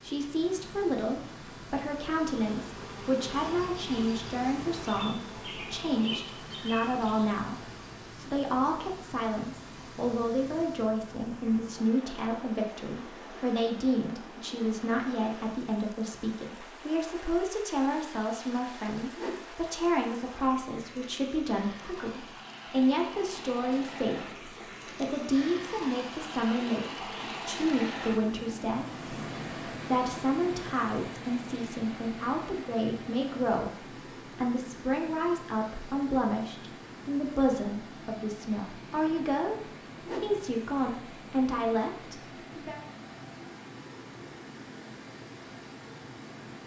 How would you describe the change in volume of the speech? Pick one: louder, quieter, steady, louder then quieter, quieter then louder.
steady.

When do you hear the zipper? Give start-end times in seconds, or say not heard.
not heard.